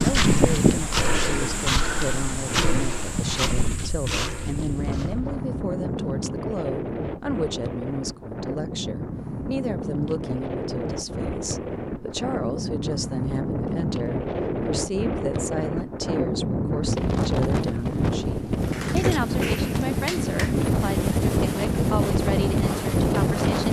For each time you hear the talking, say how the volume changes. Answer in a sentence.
You can hear the talking from 0.0 to 23.6 s, at a steady volume.